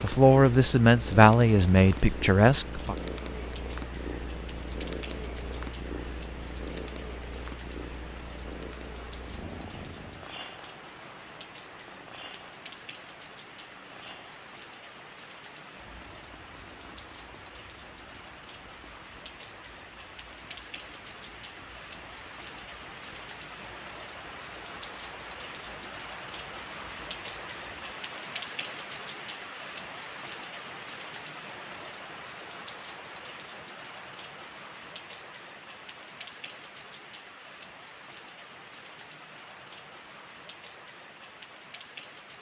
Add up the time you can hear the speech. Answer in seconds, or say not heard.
3 s.